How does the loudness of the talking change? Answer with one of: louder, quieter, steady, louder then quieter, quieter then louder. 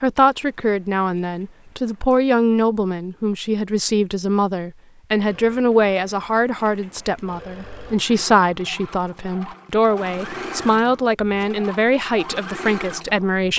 steady.